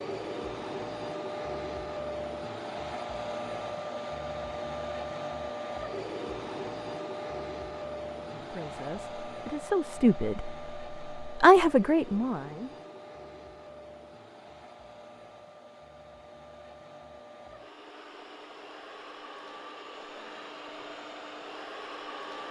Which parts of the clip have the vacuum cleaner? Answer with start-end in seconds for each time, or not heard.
0.0-22.4.